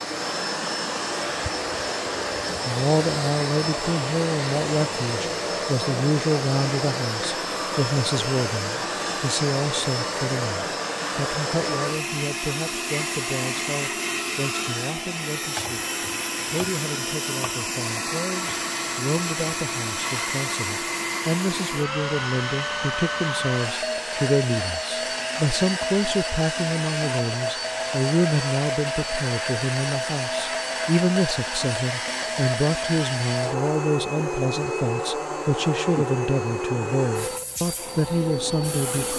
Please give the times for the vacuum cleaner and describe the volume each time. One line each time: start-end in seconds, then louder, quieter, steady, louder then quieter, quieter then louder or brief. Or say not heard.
0.0-39.1 steady.